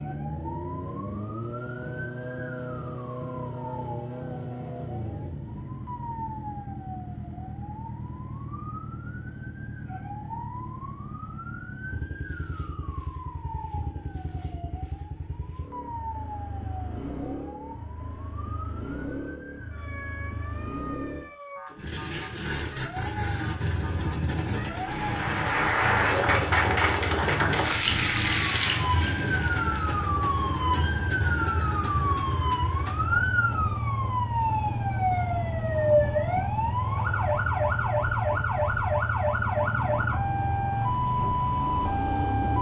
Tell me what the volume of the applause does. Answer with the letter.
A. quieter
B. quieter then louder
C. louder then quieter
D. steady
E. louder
A.